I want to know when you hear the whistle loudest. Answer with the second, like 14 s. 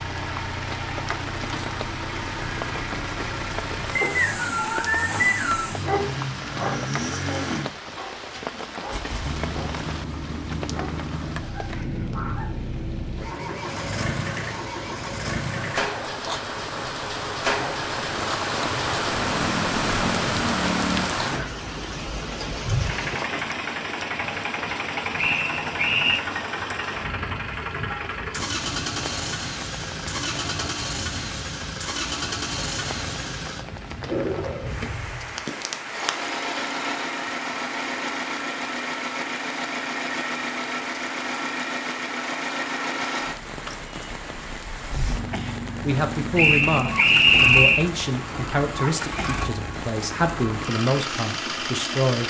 47 s.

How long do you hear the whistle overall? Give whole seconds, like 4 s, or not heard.
4 s.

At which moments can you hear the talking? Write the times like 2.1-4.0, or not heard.
45.8-52.2.